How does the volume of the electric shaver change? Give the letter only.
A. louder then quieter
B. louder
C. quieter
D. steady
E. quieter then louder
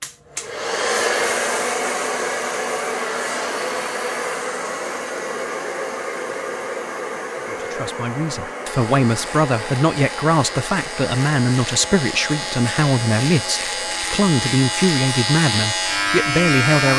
B.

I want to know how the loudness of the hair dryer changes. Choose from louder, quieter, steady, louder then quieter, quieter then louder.
quieter.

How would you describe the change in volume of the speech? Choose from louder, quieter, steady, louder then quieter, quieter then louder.
steady.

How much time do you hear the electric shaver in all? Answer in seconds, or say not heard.
8 s.